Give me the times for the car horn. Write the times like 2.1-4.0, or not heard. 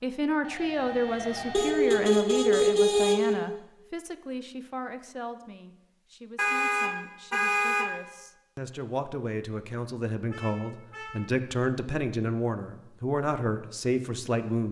1.5-3.4, 6.3-7.8, 10.3-11.2.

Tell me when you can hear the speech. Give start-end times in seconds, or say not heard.
0.0-14.6.